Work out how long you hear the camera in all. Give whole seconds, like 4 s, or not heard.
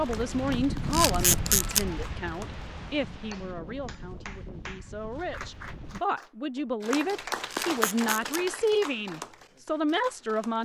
2 s.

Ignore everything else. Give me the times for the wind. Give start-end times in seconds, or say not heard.
0.0-6.0.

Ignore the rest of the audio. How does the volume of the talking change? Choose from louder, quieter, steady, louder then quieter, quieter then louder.
quieter then louder.